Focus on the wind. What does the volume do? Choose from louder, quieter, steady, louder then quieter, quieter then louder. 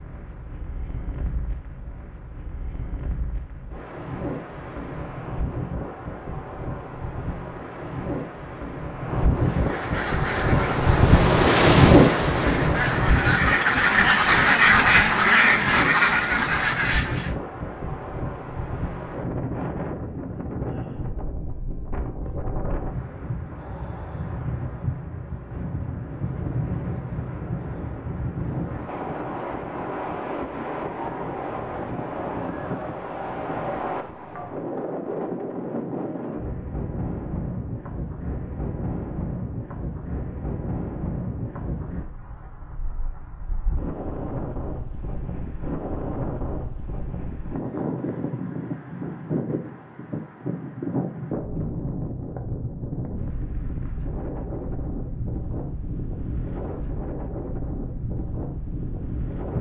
quieter.